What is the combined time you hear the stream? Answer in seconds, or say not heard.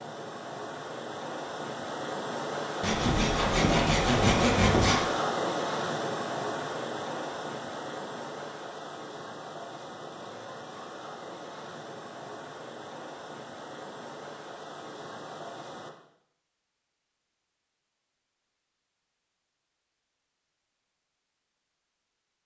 16 s.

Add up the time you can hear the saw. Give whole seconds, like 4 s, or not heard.
2 s.